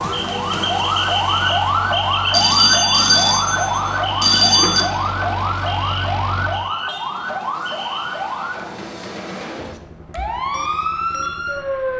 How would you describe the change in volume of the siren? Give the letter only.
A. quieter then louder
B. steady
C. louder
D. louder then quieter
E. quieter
E.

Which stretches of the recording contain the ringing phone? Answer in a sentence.
You can hear the ringing phone from 2.3 to 4.8 s.